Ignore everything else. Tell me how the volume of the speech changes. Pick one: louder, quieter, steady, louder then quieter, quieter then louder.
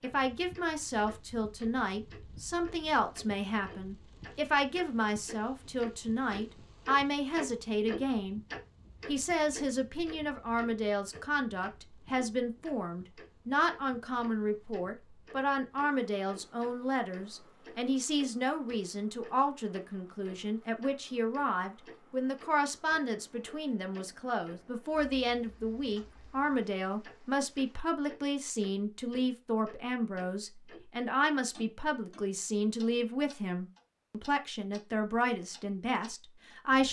steady.